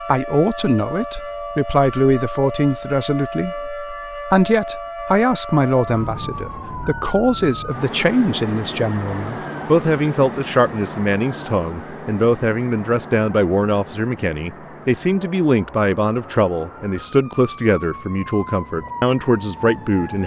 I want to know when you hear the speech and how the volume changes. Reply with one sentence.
You can hear the speech from 0.1 to 20.2 s, at a steady volume.